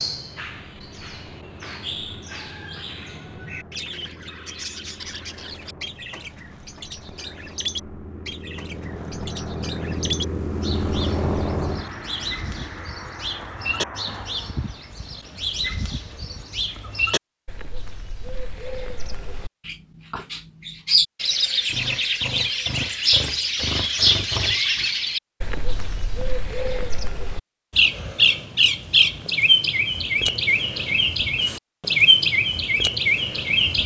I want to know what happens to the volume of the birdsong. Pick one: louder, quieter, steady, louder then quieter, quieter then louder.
louder.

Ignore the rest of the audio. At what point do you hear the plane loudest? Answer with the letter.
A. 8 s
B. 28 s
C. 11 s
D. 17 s
C.